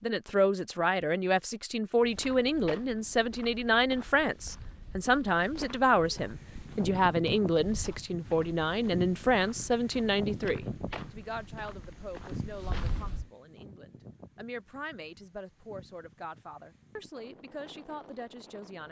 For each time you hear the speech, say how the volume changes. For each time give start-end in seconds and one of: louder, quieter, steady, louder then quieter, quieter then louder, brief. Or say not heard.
0.0-18.8 quieter.